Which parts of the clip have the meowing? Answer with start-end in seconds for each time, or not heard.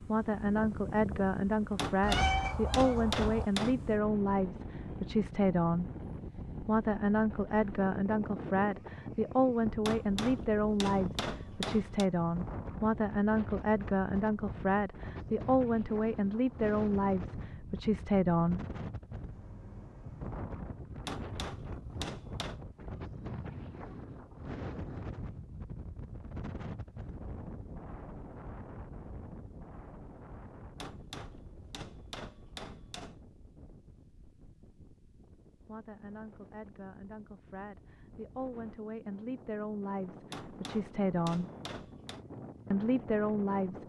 2.0-3.5.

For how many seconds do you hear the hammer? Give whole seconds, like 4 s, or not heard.
10 s.